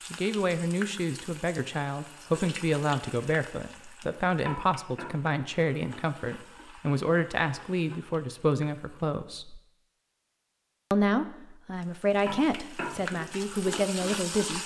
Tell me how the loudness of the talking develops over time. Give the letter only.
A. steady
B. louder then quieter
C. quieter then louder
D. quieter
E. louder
A.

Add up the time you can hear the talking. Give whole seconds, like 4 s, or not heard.
13 s.